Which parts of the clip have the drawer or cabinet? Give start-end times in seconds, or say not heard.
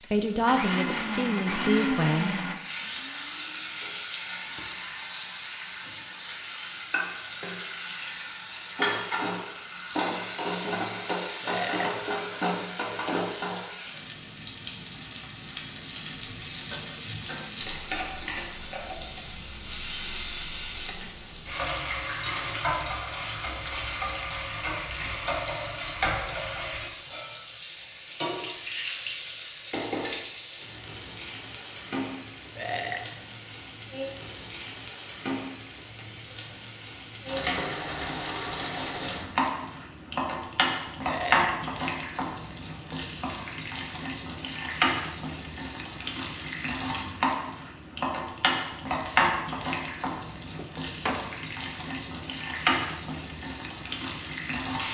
50.5-51.3.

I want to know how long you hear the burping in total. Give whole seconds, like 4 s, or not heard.
2 s.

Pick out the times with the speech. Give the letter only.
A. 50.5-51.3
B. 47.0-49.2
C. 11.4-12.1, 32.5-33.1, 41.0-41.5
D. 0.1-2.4
D.